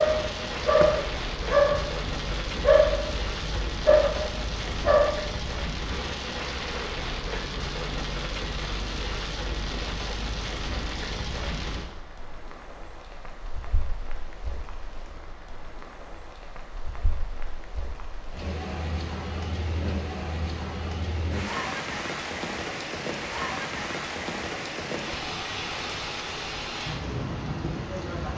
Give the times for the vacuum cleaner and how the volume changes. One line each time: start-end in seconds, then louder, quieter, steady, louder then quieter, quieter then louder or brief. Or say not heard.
not heard.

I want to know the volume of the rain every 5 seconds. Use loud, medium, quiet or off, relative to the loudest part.
loud, loud, medium, medium, loud, loud.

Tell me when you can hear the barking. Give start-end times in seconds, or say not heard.
0.0-5.2.